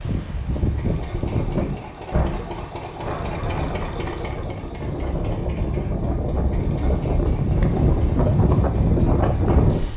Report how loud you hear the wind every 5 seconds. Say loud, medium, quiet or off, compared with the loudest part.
medium, loud.